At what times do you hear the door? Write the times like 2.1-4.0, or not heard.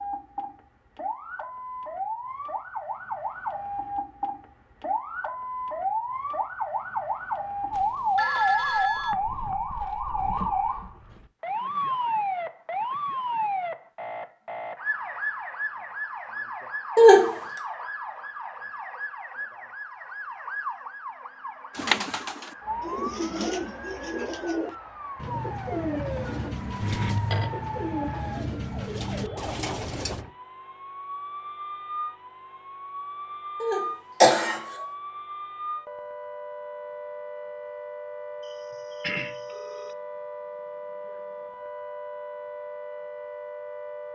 not heard.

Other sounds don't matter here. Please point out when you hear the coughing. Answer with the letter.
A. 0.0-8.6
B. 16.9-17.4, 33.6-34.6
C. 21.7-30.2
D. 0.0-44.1
B.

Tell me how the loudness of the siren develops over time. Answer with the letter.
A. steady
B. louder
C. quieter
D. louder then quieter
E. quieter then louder
C.